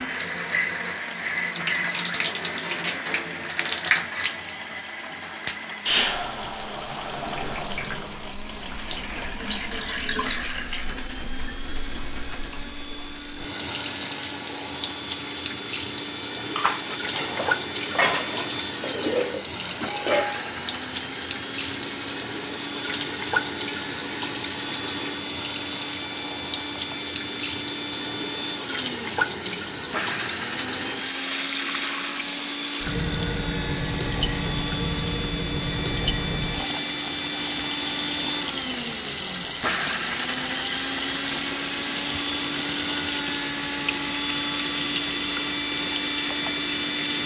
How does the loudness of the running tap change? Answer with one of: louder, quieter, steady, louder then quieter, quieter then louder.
steady.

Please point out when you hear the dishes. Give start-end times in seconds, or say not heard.
16.4-20.5.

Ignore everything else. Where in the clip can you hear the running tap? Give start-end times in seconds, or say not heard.
0.0-47.2.